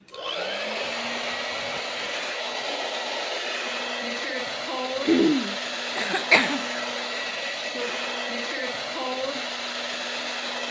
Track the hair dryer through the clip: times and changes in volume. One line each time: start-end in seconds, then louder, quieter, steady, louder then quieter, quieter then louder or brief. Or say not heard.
0.0-10.6 steady.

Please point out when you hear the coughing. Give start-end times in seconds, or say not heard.
5.0-6.7.